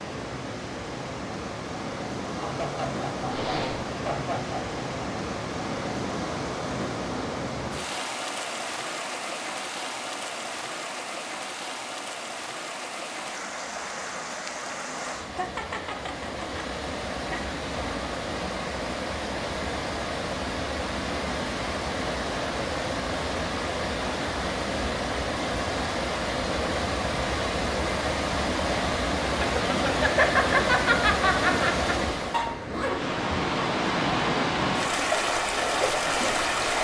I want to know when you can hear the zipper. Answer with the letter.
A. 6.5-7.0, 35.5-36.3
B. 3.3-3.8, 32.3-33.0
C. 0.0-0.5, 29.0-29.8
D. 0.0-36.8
B.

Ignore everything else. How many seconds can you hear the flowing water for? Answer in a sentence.
The flowing water can be heard for 37 seconds in total.